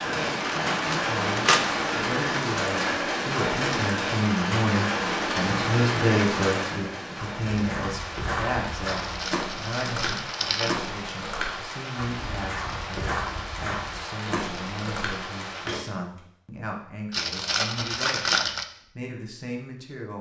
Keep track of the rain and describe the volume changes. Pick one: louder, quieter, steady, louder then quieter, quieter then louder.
quieter.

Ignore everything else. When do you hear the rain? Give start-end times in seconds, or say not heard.
0.0-15.8.